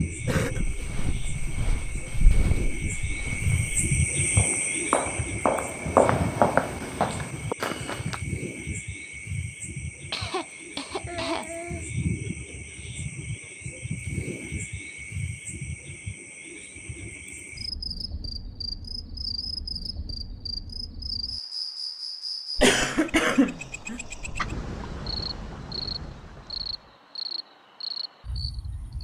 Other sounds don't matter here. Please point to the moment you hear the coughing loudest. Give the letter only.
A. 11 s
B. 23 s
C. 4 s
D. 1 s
B.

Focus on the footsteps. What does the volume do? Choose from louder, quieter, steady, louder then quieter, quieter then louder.
louder.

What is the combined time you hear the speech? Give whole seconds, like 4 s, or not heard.
not heard.